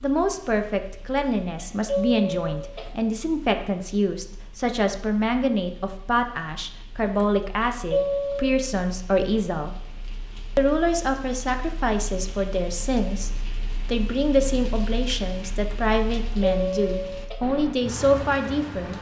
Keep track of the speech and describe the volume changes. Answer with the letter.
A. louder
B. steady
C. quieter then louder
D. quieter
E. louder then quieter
B.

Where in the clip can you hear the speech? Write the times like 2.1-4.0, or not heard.
0.0-9.8, 10.6-18.9.